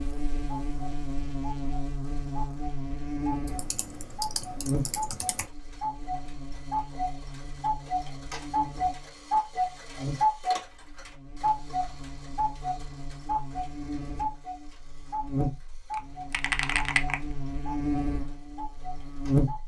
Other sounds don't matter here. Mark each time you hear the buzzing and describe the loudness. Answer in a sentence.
The buzzing can be heard from 0.0 to 19.6 s, getting quieter then louder.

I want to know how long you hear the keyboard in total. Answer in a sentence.
The keyboard can be heard for 3 seconds in total.